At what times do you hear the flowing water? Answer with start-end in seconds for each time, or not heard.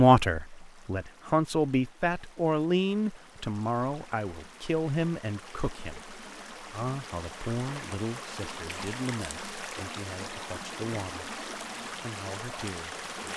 0.1-13.3.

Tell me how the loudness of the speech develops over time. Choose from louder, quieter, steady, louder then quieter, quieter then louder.
quieter.